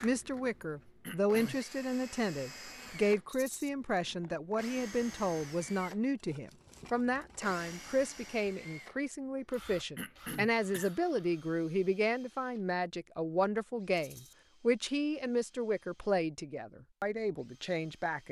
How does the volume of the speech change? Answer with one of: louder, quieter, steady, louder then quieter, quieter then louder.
steady.